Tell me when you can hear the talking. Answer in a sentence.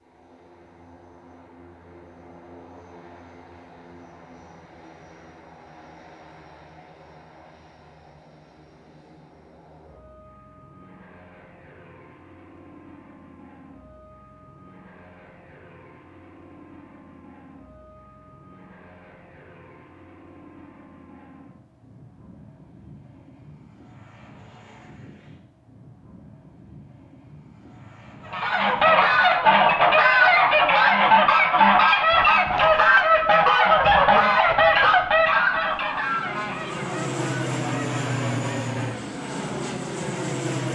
The talking can't be heard in this clip.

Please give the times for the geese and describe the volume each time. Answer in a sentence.
The geese can be heard from 28.2 to 39.0 s, getting quieter.